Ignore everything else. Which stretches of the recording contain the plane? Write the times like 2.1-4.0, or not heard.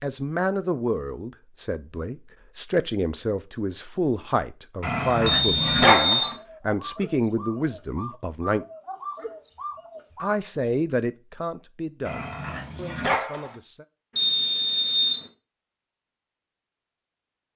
not heard.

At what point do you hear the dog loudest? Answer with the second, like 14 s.
6 s.